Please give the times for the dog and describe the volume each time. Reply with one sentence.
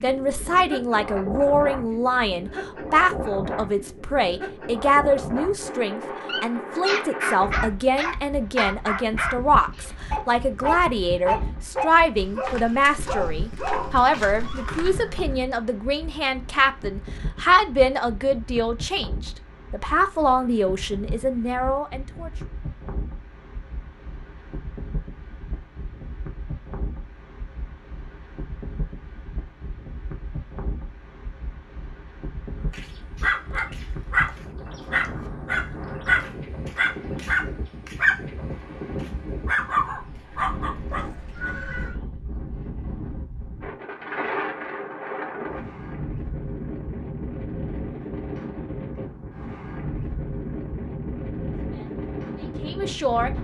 You can hear the dog from 6.2 to 15.1 s, getting quieter; and from 32.7 to 41.5 s, at a steady volume.